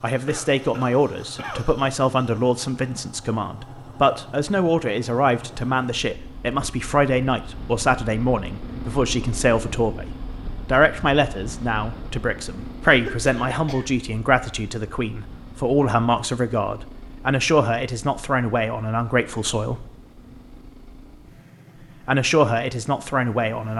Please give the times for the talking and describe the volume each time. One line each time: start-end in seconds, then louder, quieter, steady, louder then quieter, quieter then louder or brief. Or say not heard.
0.0-19.9 steady
22.1-23.7 brief.